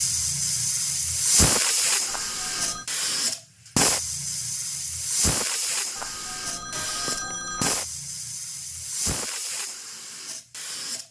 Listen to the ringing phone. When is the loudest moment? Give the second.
7 s.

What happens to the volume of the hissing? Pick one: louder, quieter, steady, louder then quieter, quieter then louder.
quieter.